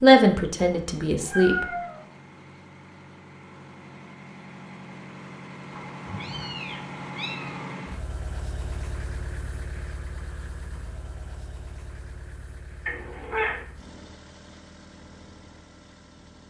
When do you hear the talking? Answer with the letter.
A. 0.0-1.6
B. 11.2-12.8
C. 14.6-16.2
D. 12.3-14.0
A.